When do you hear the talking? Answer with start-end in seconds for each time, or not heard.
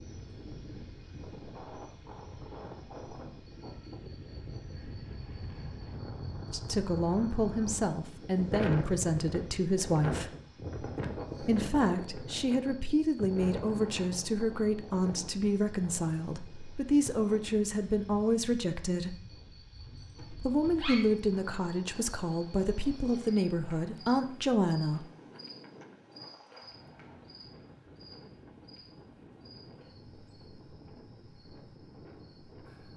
6.5-10.3, 11.4-19.2, 20.4-25.1.